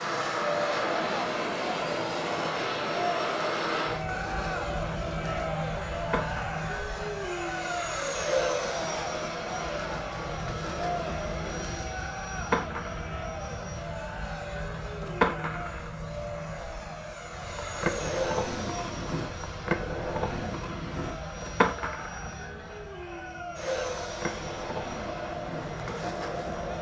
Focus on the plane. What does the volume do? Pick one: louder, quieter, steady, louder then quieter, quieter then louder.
quieter.